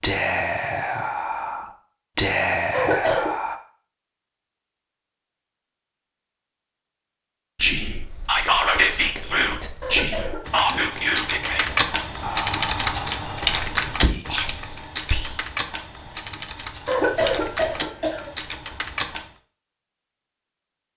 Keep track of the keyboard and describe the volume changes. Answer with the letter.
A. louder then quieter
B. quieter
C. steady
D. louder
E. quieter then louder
A.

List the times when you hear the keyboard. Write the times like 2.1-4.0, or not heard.
8.0-19.4.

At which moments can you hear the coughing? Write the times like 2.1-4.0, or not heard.
2.7-3.4, 9.8-10.7, 16.9-18.3.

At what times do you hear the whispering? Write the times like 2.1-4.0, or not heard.
0.0-3.5, 7.5-15.4.